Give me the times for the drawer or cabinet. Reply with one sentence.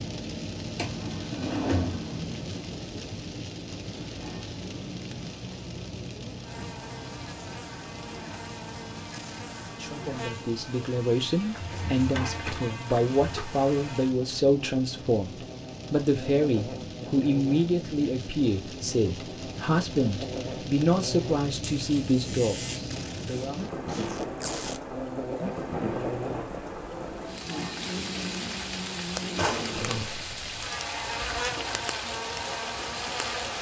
The drawer or cabinet can be heard from 0.8 to 2.2 s, from 11.6 to 13.4 s and from 29.4 to 30.1 s.